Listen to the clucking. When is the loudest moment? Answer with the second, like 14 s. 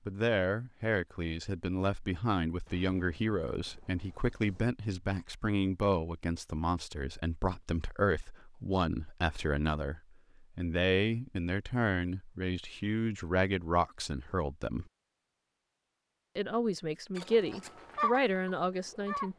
18 s.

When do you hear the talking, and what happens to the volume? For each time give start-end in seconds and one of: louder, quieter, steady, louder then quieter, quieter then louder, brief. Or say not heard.
0.1-14.8 steady
16.4-19.3 brief.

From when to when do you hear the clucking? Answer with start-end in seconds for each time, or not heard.
17.1-19.3.